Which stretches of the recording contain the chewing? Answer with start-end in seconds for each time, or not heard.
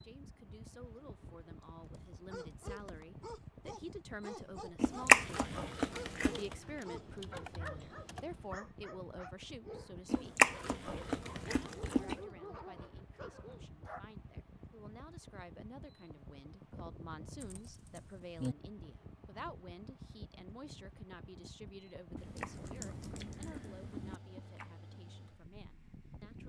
4.8-6.5, 10.1-12.2, 22.1-24.8.